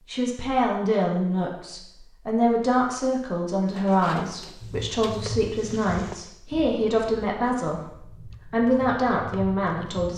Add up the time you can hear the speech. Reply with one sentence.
You can hear the speech for 10 seconds altogether.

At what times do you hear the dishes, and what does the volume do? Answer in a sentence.
You can't hear the dishes here.